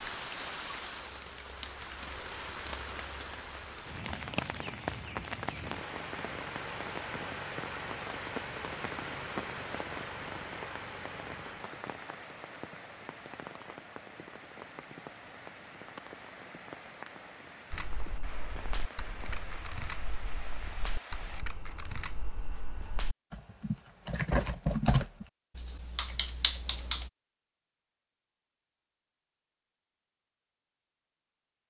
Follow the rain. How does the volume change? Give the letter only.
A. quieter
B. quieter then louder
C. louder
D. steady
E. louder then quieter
A.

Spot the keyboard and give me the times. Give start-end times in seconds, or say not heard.
17.7-27.1.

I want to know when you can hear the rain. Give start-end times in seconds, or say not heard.
0.0-21.4.